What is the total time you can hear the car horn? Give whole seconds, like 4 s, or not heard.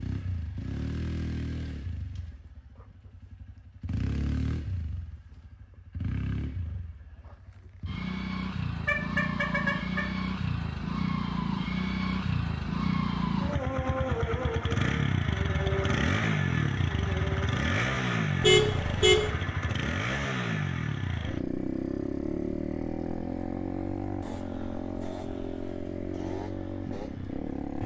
2 s.